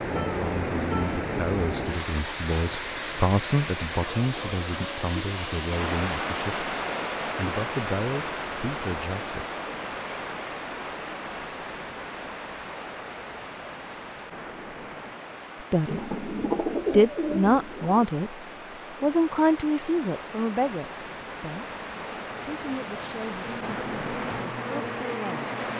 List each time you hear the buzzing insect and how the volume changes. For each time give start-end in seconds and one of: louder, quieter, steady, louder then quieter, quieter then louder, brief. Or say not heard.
21.6-25.7 louder.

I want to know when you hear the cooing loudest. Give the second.
17 s.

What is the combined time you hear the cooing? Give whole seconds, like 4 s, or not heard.
2 s.